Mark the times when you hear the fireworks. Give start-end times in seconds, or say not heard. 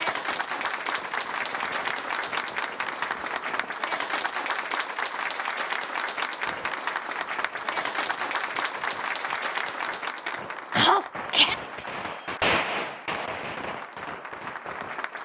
0.0-3.8, 6.5-15.1.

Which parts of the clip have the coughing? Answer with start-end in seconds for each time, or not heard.
10.2-11.6.